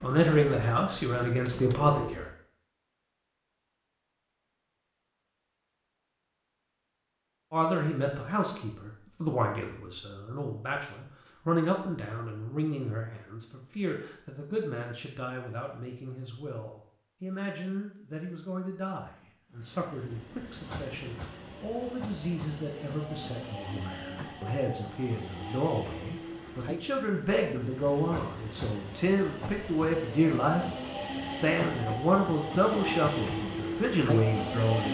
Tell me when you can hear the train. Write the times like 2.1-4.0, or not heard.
19.5-34.8.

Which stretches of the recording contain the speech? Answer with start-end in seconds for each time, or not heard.
0.0-2.2, 7.5-34.8.